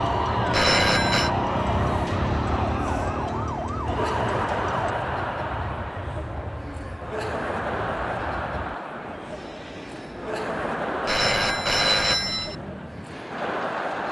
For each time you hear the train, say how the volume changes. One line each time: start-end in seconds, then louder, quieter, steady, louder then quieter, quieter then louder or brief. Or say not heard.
0.0-14.0 quieter.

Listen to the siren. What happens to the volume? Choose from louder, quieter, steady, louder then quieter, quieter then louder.
steady.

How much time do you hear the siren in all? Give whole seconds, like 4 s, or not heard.
5 s.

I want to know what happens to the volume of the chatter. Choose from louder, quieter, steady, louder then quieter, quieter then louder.
steady.